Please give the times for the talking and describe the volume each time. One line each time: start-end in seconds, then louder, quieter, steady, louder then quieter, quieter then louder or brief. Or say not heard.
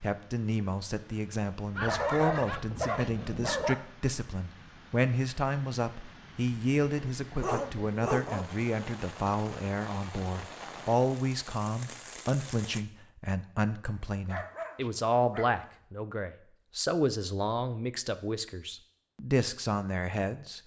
0.0-20.6 steady.